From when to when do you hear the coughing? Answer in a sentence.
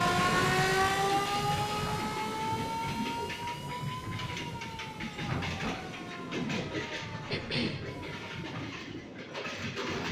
The coughing can be heard from 1.1 to 1.6 s and from 7.3 to 7.8 s.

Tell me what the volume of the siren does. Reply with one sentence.
The volume of the siren goes down.